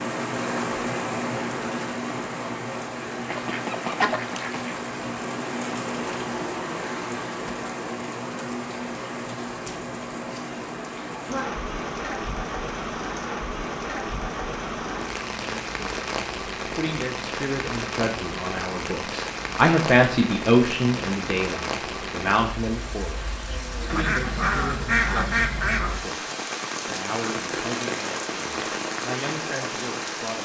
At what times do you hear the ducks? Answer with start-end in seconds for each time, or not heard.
3.2-4.8, 23.9-26.0.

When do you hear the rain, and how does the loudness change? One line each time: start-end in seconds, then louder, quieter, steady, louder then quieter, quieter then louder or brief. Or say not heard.
0.0-30.4 steady.